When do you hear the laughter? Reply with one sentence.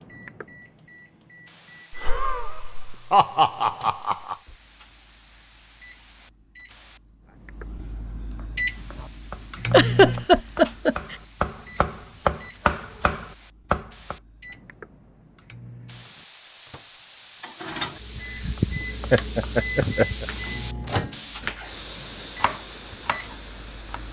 The laughter can be heard from 1.9 to 4.3 s, from 9.7 to 11.2 s and from 18.1 to 20.2 s.